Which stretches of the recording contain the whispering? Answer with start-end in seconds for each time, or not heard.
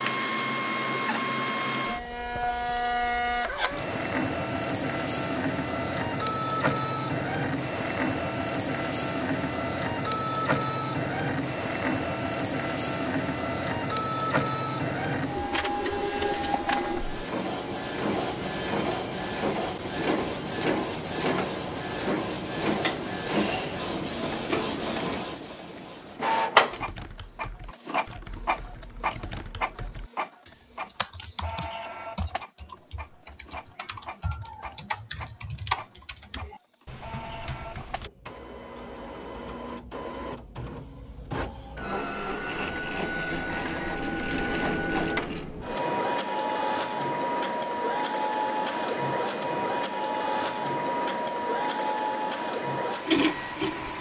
not heard.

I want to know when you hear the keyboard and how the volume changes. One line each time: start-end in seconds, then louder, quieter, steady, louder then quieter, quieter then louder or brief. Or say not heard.
26.7-38.1 louder.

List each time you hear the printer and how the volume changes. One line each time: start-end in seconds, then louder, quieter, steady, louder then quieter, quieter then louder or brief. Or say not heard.
0.0-53.9 quieter then louder.